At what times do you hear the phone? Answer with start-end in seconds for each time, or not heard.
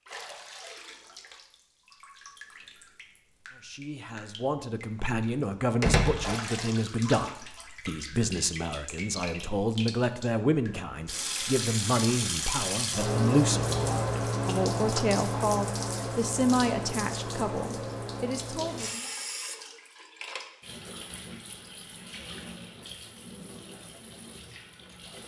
not heard.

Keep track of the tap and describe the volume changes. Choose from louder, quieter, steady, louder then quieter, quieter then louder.
louder then quieter.